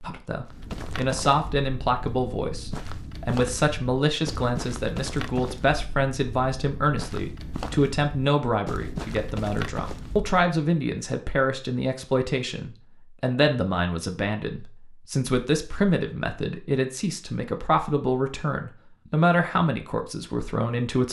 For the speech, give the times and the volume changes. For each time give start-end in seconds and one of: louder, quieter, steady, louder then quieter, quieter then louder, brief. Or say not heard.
0.0-21.0 steady.